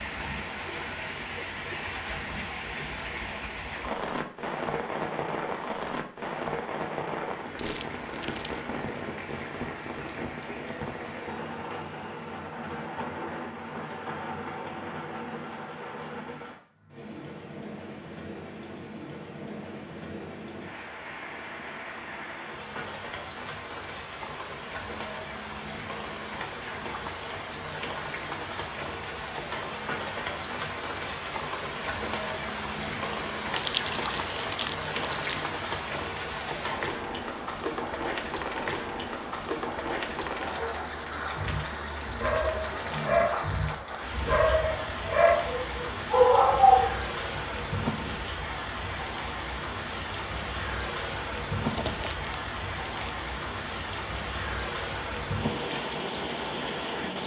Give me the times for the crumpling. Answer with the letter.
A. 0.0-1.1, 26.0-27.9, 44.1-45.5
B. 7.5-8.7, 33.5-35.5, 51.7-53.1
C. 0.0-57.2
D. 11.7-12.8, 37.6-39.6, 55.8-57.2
B.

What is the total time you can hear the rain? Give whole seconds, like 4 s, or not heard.
57 s.